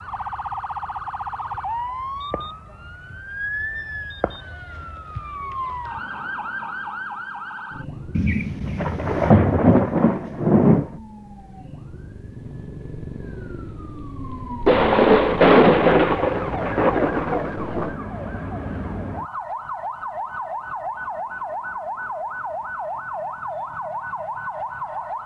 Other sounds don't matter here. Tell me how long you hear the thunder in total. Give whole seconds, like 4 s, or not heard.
6 s.